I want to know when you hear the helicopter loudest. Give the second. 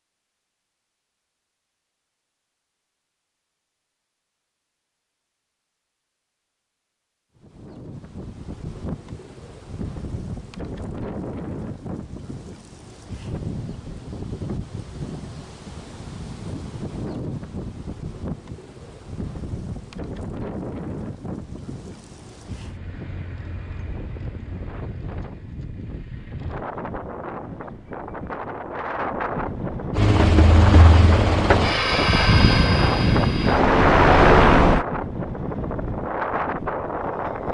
34 s.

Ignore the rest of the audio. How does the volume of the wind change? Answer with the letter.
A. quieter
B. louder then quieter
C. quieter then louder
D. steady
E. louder
E.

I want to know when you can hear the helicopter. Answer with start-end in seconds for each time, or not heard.
29.9-34.9.